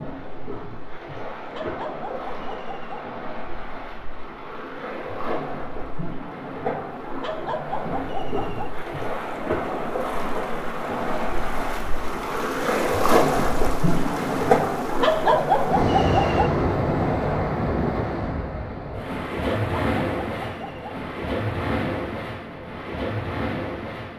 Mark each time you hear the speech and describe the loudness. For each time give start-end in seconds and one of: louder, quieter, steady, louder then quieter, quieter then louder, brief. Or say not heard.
not heard.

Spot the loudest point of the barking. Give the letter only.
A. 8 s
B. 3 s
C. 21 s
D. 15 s
D.